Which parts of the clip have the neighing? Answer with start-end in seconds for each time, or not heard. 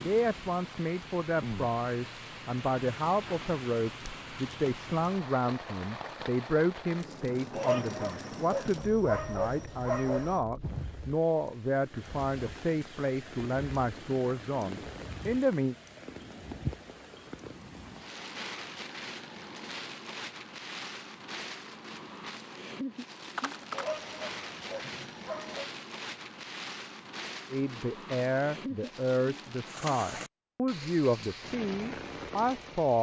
23.4-24.1.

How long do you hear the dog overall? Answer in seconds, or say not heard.
5 s.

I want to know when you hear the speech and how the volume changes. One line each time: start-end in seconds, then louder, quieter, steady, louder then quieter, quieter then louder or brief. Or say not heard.
0.0-15.8 steady
27.5-32.9 steady.